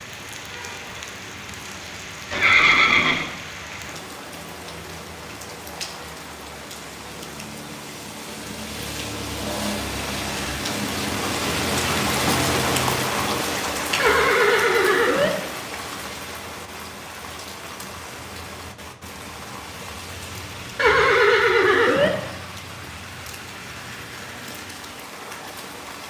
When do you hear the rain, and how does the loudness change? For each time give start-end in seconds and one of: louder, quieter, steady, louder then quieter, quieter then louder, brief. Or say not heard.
0.0-26.0 louder then quieter.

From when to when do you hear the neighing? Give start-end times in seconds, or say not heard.
2.3-3.2, 13.9-15.3, 20.8-22.1.